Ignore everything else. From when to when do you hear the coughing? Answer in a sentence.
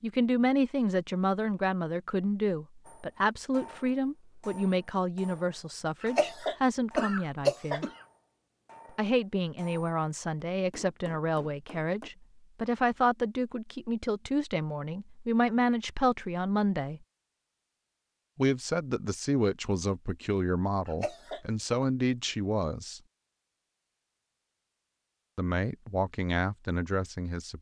You can hear the coughing from 6.0 to 7.9 s and from 20.9 to 21.9 s.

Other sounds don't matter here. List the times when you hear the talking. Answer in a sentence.
The talking can be heard from 0.0 to 7.8 s, from 8.9 to 17.0 s, from 18.4 to 23.0 s and from 25.4 to 27.5 s.